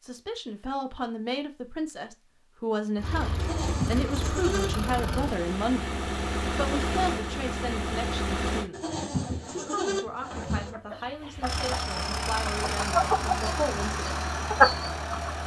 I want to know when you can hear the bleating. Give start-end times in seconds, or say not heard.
3.4-4.8, 8.7-10.7.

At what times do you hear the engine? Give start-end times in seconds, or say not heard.
3.0-8.7, 11.4-15.4.